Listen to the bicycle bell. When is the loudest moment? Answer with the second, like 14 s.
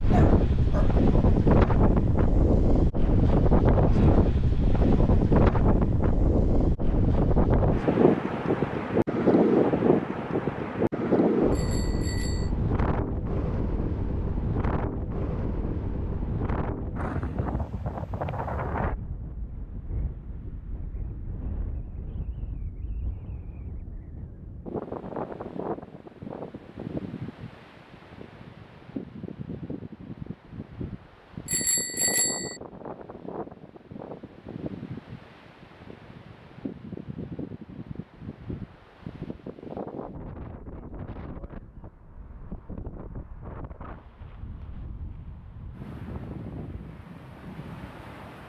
32 s.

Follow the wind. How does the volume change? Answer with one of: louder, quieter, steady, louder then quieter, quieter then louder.
quieter.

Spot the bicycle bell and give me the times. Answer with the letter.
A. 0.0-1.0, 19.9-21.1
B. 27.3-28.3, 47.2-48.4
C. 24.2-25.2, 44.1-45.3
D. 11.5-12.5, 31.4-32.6
D.